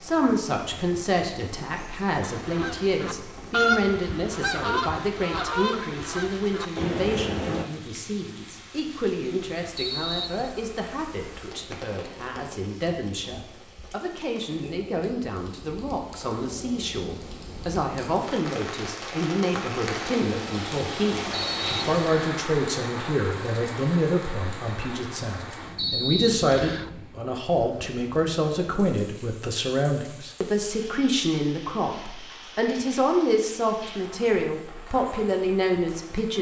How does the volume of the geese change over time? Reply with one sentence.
The loudness of the geese goes up, then down.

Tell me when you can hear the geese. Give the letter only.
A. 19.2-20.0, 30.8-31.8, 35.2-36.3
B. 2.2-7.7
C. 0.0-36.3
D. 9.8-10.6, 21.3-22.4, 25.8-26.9
B.